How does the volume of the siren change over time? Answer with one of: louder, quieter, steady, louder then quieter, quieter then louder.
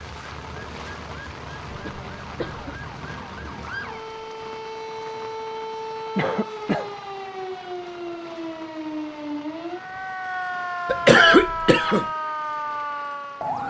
louder.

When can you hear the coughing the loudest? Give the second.
11 s.